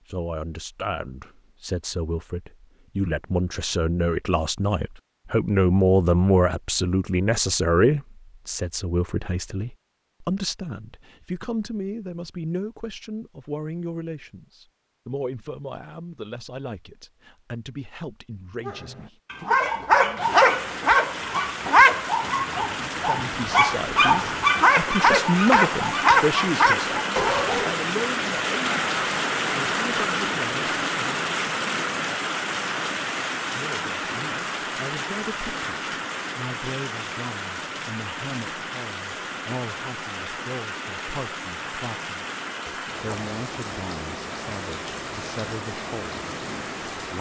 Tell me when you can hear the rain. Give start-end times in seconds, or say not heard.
20.2-47.1.